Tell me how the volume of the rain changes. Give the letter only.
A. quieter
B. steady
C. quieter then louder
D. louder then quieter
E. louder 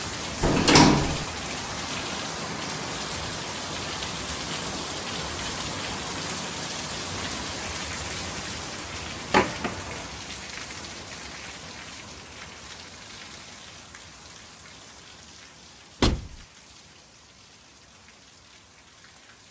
A.